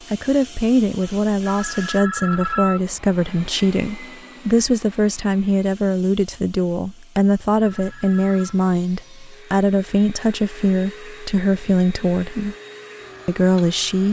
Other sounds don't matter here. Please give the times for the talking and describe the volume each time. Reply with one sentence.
The talking can be heard from 0.1 to 12.6 s, at a steady volume; and briefly from 13.2 to 14.0 s.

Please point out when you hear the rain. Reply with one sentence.
The rain can't be heard in this clip.